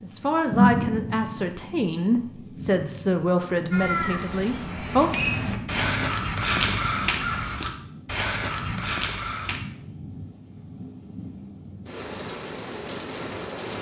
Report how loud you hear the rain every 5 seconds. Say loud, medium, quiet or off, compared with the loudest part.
loud, medium, medium.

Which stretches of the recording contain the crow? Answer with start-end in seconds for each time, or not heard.
3.7-9.6.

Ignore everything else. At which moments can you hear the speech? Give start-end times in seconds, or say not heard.
0.0-5.1.